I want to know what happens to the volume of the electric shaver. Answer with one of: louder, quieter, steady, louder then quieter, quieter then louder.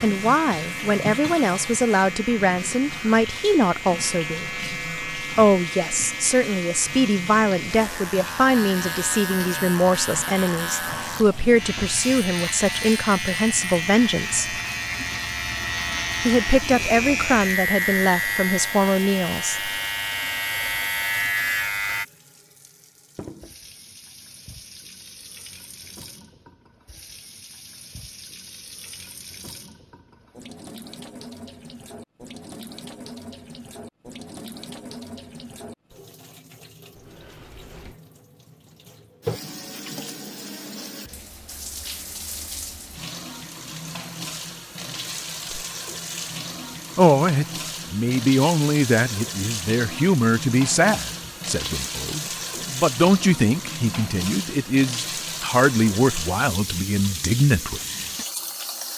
louder.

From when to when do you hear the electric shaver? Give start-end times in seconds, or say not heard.
0.0-22.1.